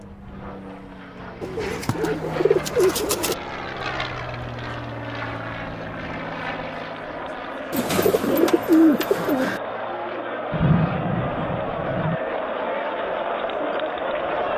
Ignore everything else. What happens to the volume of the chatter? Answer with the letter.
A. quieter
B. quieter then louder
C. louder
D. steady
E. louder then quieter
C.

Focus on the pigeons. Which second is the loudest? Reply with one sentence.
The volume of the pigeons peaks at 9 seconds.